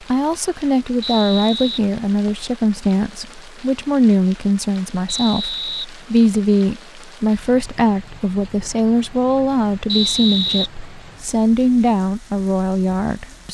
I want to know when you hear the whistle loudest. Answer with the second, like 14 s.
10 s.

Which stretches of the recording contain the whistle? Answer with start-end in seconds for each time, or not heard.
1.0-2.5, 5.0-6.5, 9.8-10.7.